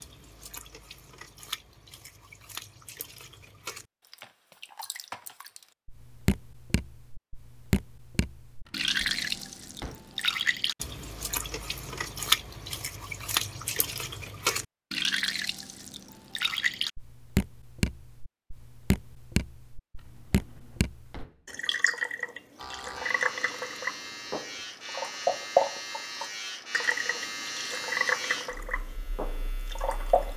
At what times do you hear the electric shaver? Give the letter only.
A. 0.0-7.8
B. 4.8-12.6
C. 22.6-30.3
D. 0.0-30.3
C.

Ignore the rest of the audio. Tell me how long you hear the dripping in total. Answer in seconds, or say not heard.
30 s.